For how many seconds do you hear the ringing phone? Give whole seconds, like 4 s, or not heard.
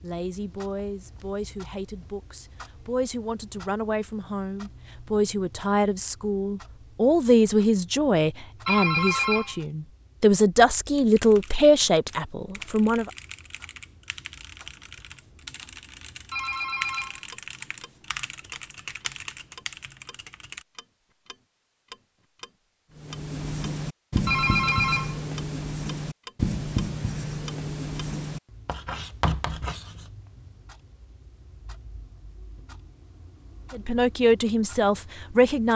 3 s.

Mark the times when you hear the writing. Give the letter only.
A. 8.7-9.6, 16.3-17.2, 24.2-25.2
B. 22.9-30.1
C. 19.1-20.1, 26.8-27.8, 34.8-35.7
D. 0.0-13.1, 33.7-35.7
B.